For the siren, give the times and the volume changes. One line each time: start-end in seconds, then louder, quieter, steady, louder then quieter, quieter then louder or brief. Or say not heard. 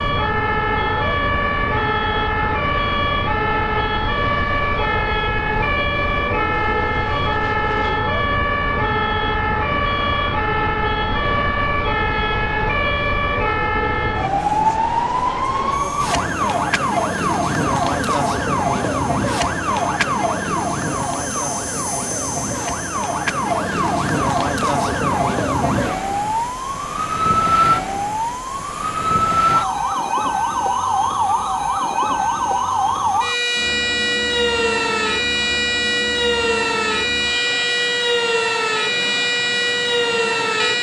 0.0-40.7 steady.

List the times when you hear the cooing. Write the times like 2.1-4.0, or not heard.
not heard.